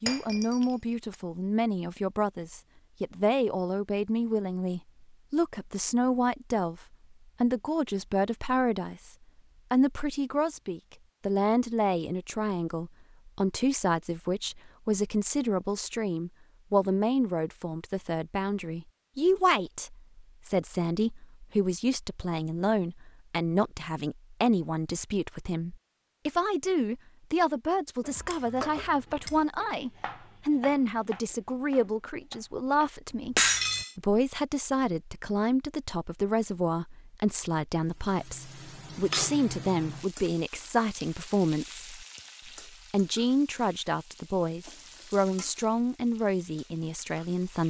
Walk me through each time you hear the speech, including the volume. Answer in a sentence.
You can hear the speech from 0.0 to 47.6 s, at a steady volume.